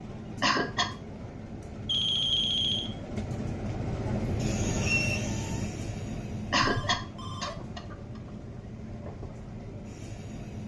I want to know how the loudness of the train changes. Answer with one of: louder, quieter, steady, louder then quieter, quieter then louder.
louder then quieter.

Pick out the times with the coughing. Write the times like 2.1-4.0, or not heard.
0.4-0.9, 6.5-8.0.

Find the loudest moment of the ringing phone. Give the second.
2 s.